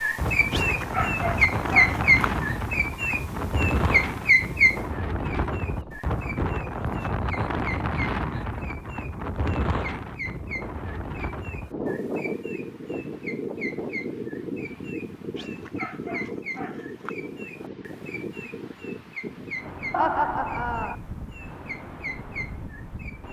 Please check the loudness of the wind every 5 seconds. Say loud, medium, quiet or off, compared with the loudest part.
loud, loud, loud, medium, medium.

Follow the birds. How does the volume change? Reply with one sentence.
The volume of the birds goes down.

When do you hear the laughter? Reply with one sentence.
The laughter can be heard from 19.9 to 20.9 s.